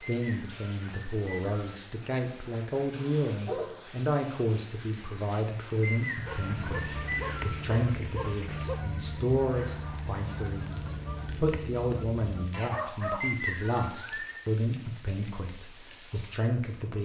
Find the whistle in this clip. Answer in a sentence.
You can hear the whistle from 0.1 to 1.6 s, from 5.8 to 7.6 s and from 13.2 to 14.4 s.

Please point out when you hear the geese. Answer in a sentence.
You can hear the geese from 6.3 to 12.8 s.